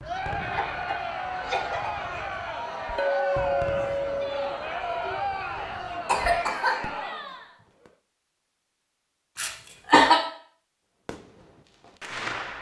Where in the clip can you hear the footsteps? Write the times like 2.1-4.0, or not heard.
not heard.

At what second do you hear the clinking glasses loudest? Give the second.
3 s.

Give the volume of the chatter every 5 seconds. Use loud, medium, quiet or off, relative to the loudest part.
loud, loud, off.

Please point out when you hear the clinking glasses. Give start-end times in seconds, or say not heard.
3.0-4.5.